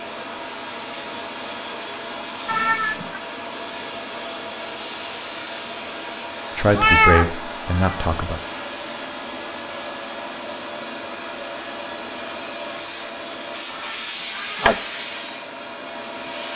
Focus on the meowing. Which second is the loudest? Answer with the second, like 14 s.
7 s.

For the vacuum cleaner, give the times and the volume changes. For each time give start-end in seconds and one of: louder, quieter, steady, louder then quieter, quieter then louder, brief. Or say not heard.
0.0-16.5 steady.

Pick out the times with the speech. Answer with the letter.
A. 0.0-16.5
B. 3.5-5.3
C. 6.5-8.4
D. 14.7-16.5
C.